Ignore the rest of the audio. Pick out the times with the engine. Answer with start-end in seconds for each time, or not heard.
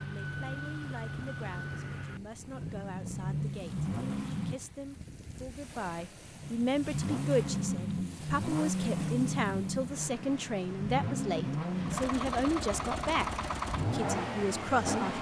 0.0-4.6, 6.4-15.1.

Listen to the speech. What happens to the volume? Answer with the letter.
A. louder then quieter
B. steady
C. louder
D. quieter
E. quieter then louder
C.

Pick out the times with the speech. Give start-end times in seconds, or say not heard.
0.0-15.1.